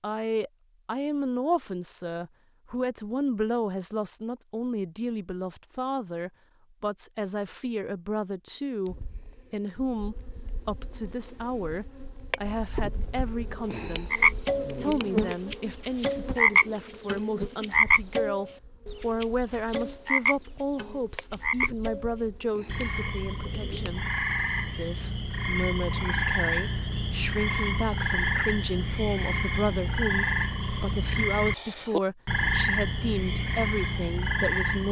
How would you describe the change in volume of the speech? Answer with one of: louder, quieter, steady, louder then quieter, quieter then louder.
steady.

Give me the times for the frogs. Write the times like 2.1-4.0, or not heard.
14.1-34.8.